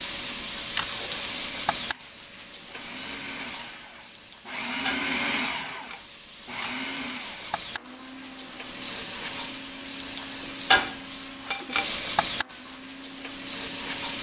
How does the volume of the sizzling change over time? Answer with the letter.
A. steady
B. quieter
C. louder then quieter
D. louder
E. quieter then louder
E.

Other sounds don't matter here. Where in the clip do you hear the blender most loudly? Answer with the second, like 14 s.
5 s.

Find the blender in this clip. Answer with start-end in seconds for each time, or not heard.
0.0-14.1.